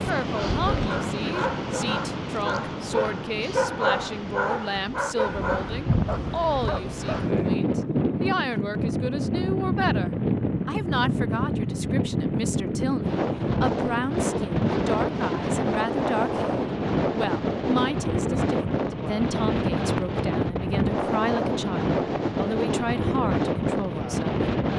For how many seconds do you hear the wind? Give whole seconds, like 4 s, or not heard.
25 s.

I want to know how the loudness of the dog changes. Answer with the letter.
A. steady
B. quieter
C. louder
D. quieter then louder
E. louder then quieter
E.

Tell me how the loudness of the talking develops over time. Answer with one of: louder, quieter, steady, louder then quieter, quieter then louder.
steady.